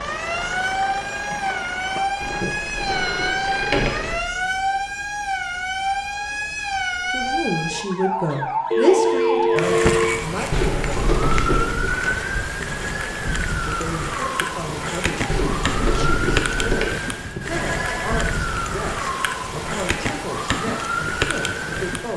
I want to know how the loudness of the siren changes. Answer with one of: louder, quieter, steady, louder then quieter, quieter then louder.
steady.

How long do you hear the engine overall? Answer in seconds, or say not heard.
4 s.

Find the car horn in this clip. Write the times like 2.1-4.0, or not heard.
not heard.